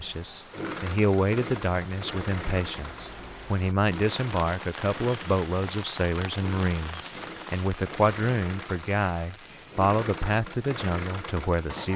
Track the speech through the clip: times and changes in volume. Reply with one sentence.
You can hear the speech from 0.0 to 11.9 s, at a steady volume.